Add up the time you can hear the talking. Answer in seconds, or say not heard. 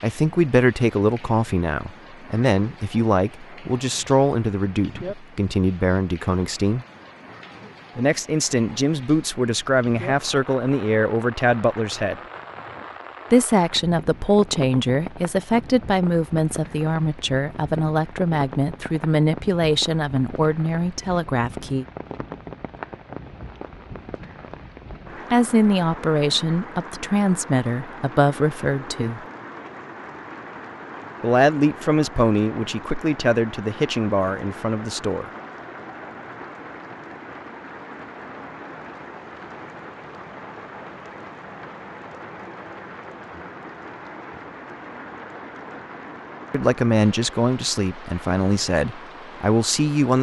31 s.